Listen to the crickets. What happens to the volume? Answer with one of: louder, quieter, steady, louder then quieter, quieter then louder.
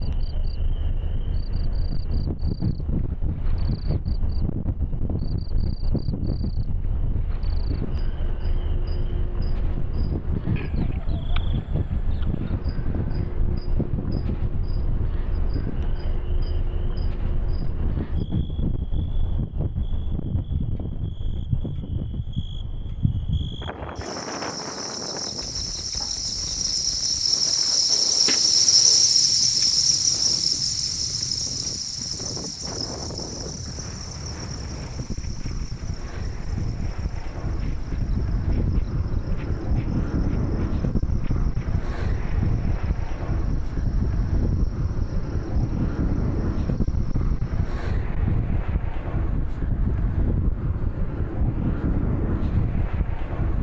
louder then quieter.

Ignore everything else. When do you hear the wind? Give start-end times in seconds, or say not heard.
0.0-53.5.